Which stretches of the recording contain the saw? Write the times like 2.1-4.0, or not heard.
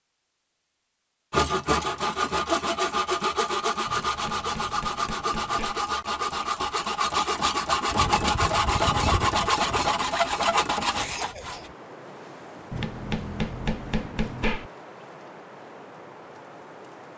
1.3-11.7.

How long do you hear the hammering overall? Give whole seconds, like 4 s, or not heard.
4 s.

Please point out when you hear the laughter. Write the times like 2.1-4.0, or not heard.
10.9-11.8.